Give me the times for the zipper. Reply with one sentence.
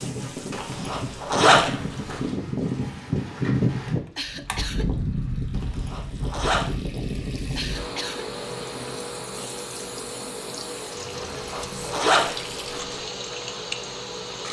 You can hear the zipper from 0.5 to 2.2 s, from 5.5 to 6.7 s and from 11.2 to 13.0 s.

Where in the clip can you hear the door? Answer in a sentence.
The door can't be heard in this clip.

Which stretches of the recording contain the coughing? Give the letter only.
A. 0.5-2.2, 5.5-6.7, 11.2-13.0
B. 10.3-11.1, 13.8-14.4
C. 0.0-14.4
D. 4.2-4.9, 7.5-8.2
D.